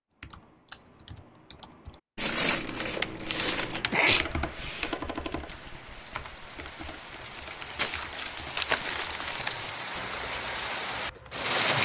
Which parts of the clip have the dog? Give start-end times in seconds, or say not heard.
not heard.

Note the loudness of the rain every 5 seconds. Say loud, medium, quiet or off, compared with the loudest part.
off, medium, loud.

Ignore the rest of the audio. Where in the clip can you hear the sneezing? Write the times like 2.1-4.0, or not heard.
3.2-5.0.